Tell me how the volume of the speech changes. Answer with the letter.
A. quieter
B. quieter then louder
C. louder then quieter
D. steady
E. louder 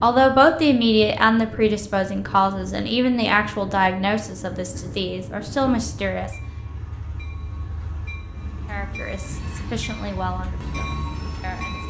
A.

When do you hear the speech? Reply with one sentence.
You can hear the speech from 0.0 to 6.3 s and from 8.7 to 11.8 s.